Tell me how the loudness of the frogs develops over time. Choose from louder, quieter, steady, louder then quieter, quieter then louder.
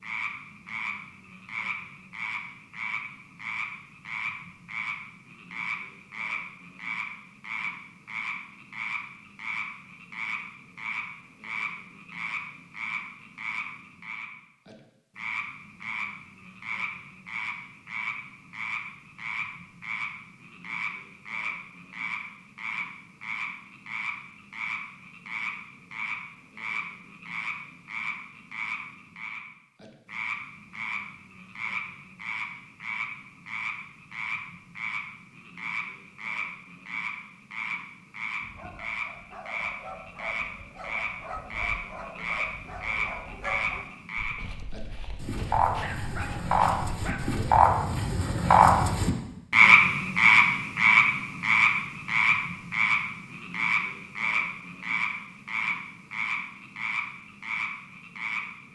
louder.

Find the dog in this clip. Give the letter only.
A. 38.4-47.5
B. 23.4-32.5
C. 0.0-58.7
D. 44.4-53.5
A.